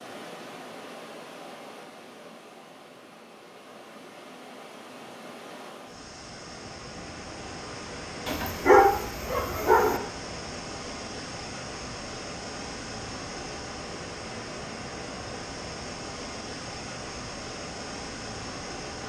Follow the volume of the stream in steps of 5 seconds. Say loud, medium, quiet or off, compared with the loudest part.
medium, loud, loud, loud.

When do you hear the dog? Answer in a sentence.
You can hear the dog from 8.2 to 10.0 s.